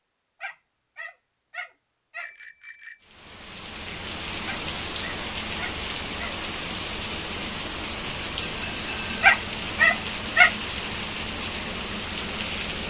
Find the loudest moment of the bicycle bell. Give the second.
9 s.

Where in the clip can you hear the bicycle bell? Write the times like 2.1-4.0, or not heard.
2.1-3.1, 8.3-9.4.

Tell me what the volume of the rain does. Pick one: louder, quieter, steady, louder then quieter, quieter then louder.
steady.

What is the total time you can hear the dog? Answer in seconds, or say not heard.
5 s.